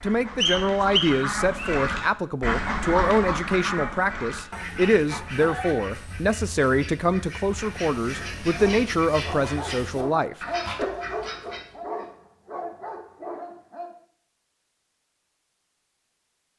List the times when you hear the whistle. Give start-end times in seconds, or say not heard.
0.4-1.8.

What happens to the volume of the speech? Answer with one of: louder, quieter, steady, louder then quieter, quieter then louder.
steady.